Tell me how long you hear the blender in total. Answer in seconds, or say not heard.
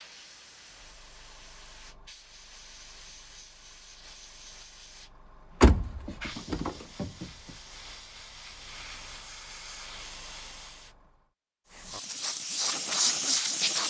not heard.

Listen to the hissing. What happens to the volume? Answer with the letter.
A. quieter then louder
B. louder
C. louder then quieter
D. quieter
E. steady
B.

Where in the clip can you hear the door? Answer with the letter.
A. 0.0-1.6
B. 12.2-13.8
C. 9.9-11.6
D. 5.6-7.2
D.